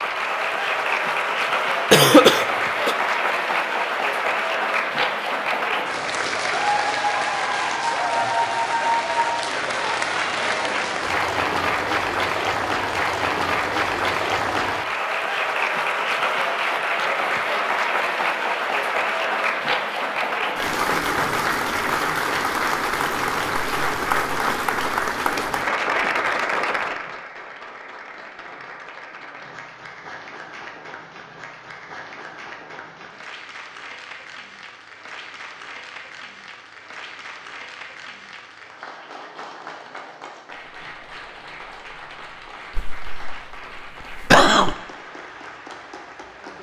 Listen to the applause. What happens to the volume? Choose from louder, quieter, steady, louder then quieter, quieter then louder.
quieter.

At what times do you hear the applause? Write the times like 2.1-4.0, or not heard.
0.0-46.5.